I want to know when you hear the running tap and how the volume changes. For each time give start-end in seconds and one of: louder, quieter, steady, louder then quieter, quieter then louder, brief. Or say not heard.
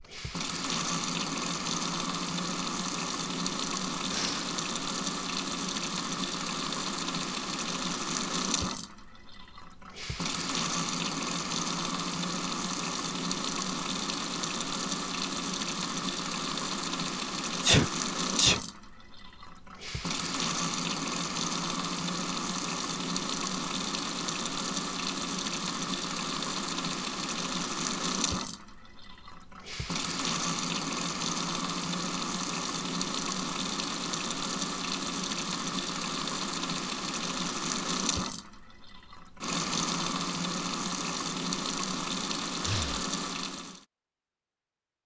0.0-43.9 steady.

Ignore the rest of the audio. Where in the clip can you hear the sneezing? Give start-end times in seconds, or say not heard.
17.6-18.6.